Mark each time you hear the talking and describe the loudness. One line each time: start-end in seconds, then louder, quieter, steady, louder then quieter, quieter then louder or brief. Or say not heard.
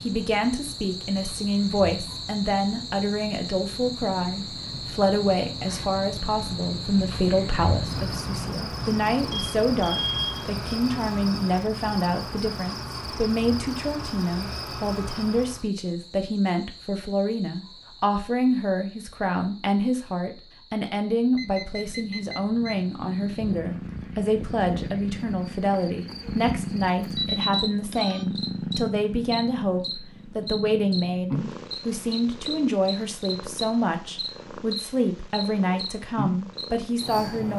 0.0-37.5 steady.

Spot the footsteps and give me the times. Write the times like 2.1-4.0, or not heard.
not heard.